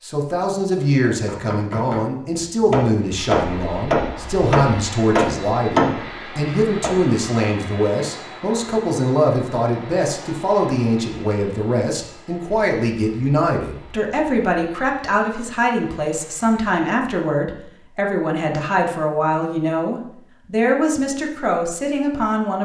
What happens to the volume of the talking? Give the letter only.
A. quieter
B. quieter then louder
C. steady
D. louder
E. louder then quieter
C.